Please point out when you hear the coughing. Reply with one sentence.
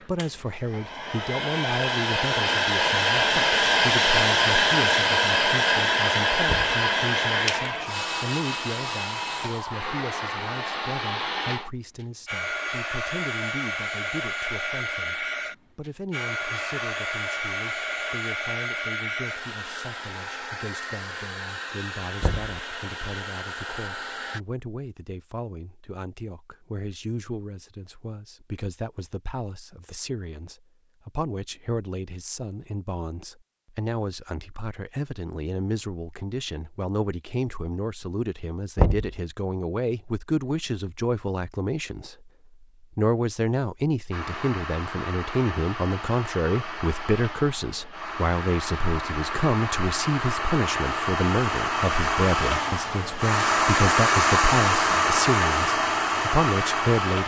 You can't hear the coughing here.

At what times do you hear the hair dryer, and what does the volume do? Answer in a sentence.
You can hear the hair dryer from 0.0 to 24.4 s, getting quieter; and from 44.1 to 57.2 s, getting louder.